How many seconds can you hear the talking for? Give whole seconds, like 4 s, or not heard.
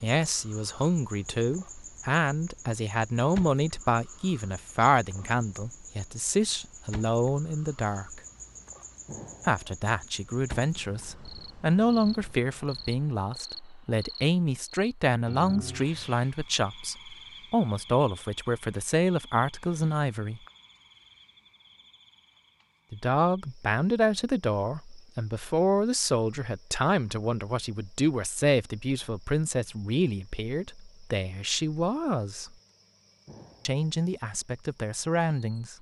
31 s.